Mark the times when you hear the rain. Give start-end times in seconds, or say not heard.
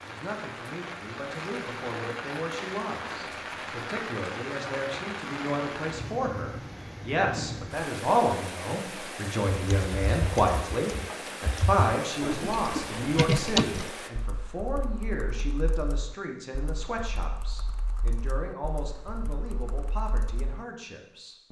0.0-14.1.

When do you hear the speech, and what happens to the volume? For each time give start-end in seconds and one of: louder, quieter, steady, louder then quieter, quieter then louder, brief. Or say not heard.
0.0-21.4 louder then quieter.